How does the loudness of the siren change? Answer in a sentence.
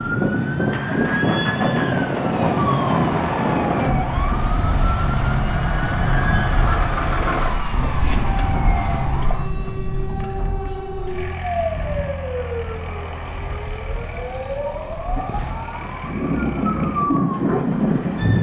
The loudness of the siren stays about the same.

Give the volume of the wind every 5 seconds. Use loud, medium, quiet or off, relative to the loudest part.
loud, medium, quiet, loud.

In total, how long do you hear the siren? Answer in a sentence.
The siren can be heard for 18 seconds in total.